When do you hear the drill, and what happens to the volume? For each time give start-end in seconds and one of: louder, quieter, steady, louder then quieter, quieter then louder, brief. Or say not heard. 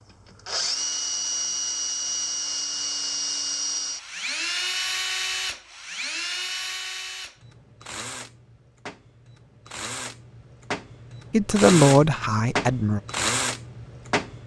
0.5-14.4 quieter then louder.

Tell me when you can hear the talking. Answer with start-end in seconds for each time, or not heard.
11.3-13.0.